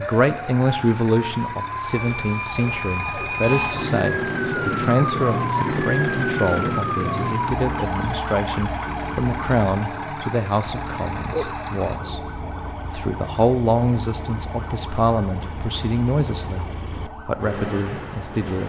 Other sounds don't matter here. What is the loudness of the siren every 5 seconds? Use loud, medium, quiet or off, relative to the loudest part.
loud, loud, medium, quiet.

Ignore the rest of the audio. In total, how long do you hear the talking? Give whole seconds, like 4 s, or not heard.
18 s.